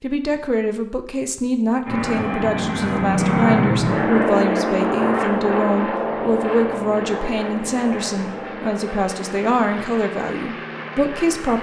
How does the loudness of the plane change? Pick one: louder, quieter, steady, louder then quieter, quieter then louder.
quieter.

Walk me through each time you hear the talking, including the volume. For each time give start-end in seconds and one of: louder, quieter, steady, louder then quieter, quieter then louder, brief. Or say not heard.
0.0-11.5 steady.